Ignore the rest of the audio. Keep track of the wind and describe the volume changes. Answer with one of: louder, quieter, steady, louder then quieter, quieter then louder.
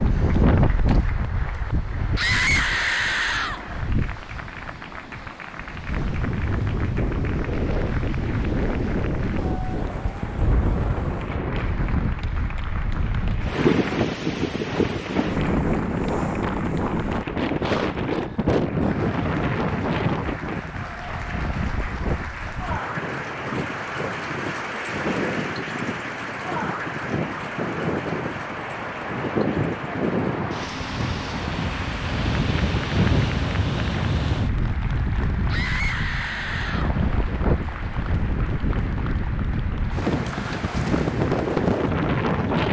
steady.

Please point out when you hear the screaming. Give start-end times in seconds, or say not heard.
2.1-3.6, 35.5-37.0.